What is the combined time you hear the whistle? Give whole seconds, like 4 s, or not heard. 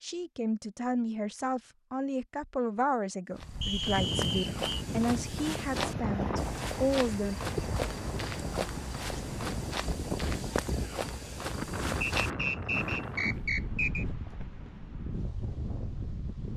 3 s.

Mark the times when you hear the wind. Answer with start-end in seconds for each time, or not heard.
3.4-16.5.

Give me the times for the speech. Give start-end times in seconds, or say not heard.
0.0-7.3.